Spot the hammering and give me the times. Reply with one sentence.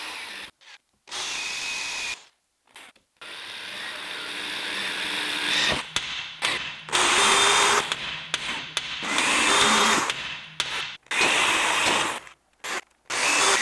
The hammering can be heard from 5.6 to 12.2 s.